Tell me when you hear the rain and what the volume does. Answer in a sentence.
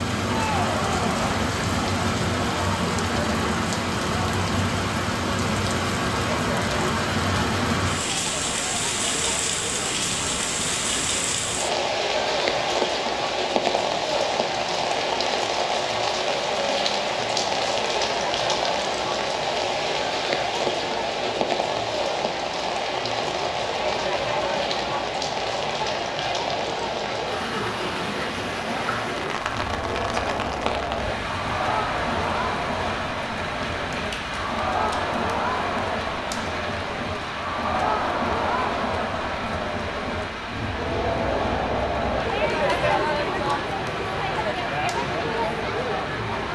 The rain can be heard from 0.0 to 46.5 s, getting quieter.